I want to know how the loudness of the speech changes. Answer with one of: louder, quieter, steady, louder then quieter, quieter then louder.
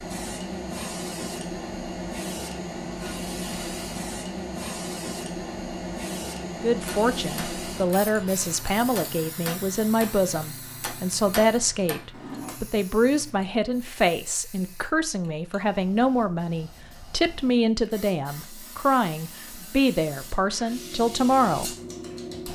steady.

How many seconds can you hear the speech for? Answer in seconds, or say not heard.
15 s.